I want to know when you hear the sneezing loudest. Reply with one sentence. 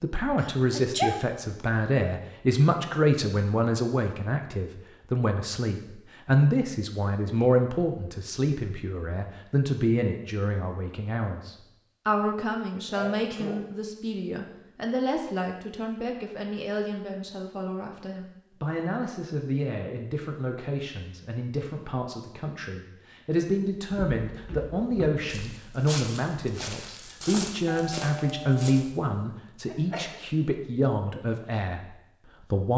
The volume of the sneezing peaks at 1 second.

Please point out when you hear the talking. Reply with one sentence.
The talking can be heard from 0.0 to 32.7 s.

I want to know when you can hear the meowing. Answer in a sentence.
You can't hear the meowing here.